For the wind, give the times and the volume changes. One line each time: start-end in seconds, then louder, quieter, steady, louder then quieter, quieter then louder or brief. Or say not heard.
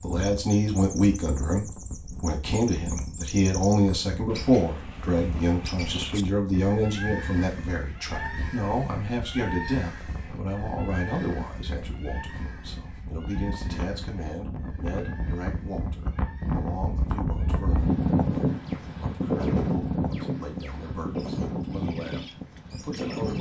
0.0-23.3 louder.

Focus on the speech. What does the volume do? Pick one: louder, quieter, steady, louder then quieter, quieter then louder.
quieter.